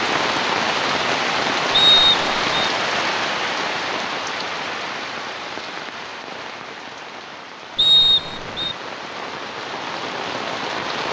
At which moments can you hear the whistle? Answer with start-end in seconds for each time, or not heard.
1.7-2.7, 7.8-8.8.